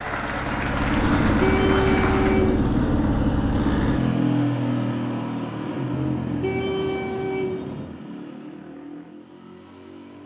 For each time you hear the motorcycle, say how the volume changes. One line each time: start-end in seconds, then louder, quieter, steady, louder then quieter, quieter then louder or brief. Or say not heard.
0.0-10.2 quieter.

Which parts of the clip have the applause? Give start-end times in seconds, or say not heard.
0.0-2.4.